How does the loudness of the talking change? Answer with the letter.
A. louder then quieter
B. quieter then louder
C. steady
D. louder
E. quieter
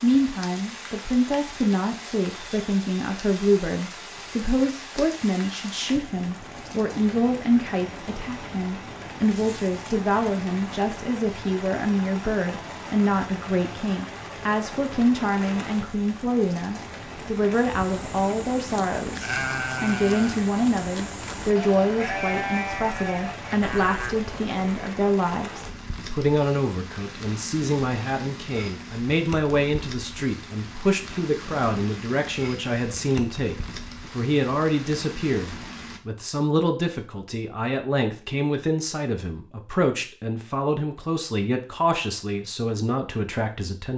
C.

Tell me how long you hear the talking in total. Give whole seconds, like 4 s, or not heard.
44 s.